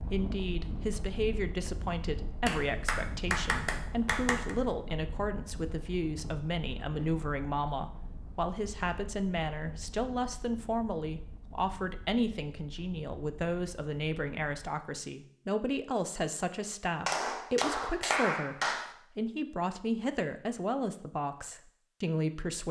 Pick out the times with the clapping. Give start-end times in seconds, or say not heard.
2.5-4.5, 17.1-18.9.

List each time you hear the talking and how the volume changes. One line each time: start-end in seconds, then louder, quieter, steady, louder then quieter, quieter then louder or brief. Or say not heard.
0.0-22.6 steady.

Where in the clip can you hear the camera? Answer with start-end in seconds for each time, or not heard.
not heard.